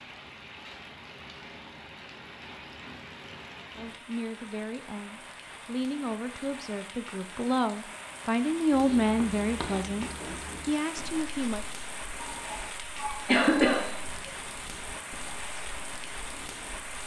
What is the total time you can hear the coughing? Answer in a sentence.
The coughing can be heard for 2 seconds in total.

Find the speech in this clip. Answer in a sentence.
You can hear the speech from 3.8 to 11.7 s.